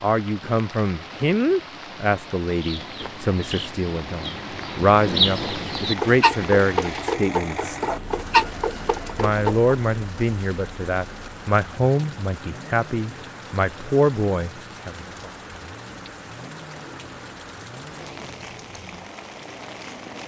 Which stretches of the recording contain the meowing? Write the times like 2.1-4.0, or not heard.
not heard.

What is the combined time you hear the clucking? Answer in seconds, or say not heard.
7 s.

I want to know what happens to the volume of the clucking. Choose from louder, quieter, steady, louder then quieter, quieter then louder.
louder.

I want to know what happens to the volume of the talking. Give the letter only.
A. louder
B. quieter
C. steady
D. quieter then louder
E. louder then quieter
C.